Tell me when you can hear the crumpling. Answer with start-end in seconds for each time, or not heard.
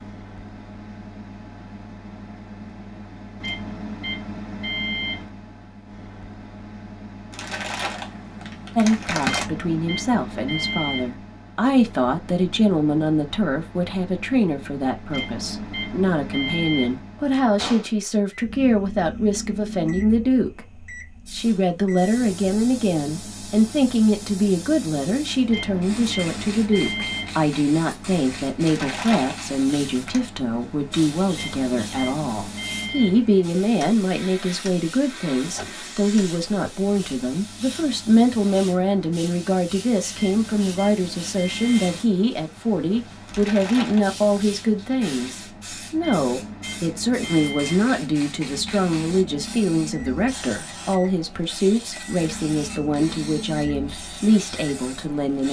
7.3-9.4, 28.6-30.2, 43.2-44.6.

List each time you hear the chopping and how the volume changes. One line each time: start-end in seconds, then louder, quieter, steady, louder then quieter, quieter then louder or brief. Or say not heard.
not heard.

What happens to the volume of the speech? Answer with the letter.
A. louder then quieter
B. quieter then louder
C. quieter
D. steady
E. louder
D.